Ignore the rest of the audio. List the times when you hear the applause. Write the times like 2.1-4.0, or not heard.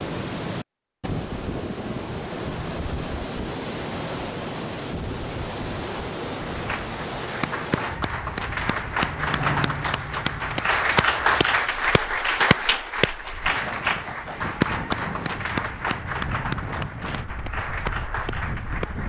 6.5-19.0.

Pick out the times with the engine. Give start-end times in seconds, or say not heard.
8.4-10.7.